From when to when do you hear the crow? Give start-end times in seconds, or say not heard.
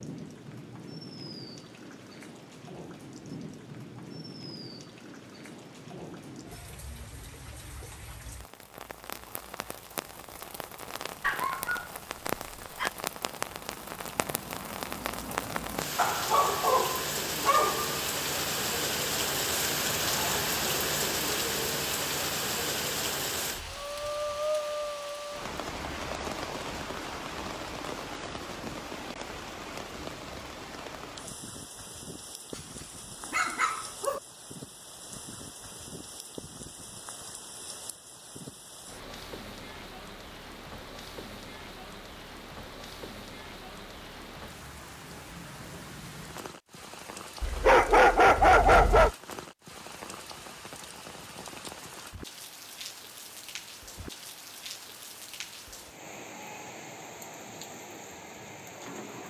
not heard.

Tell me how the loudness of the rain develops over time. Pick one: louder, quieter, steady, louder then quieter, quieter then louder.
louder then quieter.